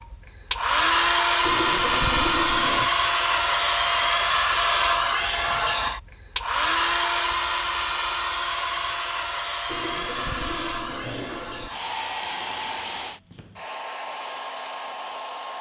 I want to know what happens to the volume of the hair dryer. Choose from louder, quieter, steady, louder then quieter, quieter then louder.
quieter.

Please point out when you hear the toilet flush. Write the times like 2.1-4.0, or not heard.
1.4-2.9, 9.7-11.7.